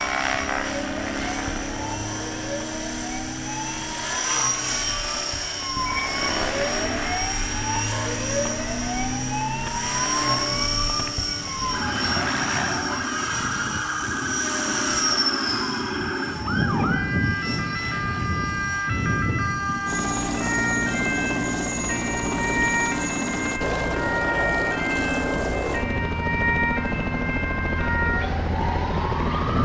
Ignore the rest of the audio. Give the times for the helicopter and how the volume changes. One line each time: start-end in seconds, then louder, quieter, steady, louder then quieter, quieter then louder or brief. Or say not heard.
0.0-29.6 steady.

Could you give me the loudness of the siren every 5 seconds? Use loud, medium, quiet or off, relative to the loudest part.
medium, loud, loud, loud, loud, loud.